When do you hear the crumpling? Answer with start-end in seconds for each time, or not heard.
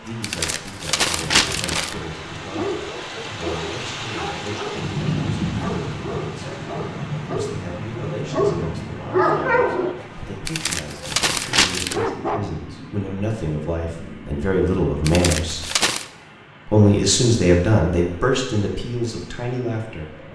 0.2-1.9, 10.4-12.0, 15.1-16.1.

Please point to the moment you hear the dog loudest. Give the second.
9 s.